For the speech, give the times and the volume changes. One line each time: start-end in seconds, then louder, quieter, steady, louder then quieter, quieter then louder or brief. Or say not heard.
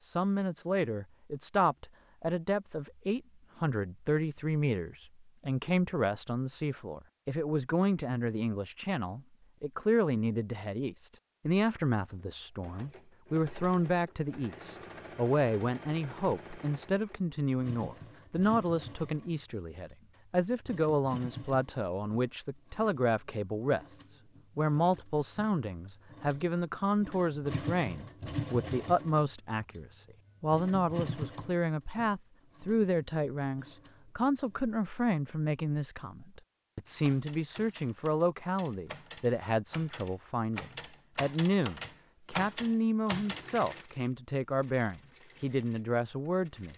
0.0-46.7 steady.